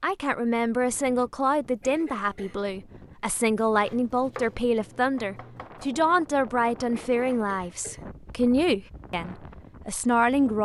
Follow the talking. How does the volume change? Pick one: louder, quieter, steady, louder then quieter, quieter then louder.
steady.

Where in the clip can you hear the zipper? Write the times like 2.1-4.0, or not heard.
not heard.